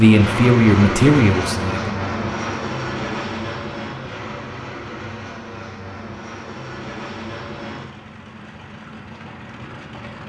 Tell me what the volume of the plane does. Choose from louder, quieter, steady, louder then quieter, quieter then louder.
quieter.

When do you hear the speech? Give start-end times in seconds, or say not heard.
0.0-1.9.